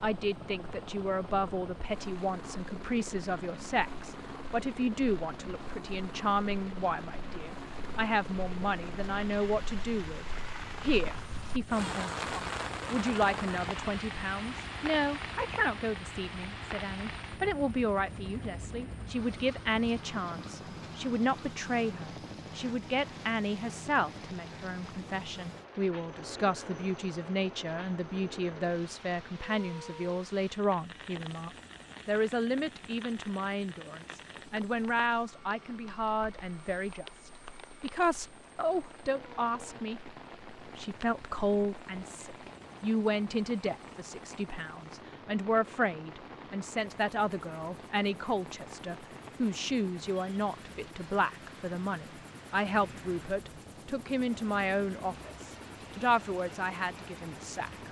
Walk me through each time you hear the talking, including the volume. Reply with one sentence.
The talking can be heard from 0.0 to 57.8 s, at a steady volume.